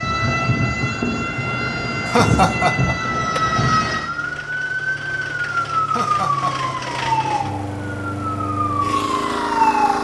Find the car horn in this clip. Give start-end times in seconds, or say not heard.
not heard.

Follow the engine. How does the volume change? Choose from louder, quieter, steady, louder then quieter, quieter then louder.
louder.